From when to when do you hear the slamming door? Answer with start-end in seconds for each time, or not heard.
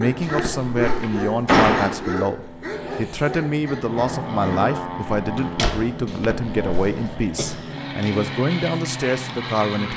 0.8-2.0, 5.2-5.8.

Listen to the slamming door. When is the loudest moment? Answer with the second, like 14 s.
2 s.